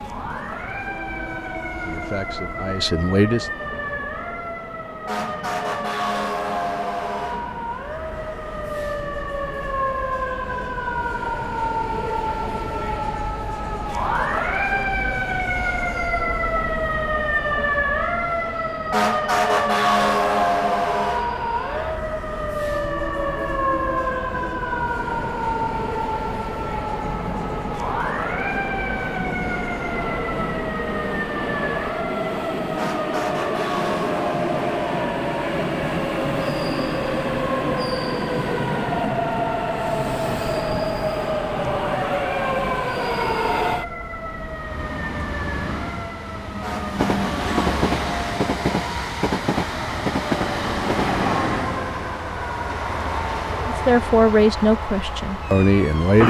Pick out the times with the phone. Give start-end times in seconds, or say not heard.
not heard.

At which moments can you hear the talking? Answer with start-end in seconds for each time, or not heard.
1.7-3.5, 53.6-56.2.